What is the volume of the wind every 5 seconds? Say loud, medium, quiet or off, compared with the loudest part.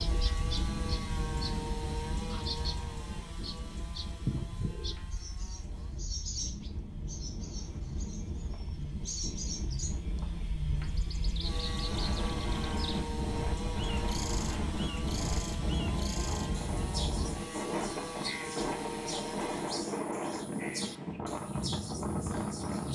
medium, medium, loud, loud, loud.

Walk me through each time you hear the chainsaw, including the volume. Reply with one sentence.
You can hear the chainsaw from 0.0 to 19.9 s, getting quieter then louder.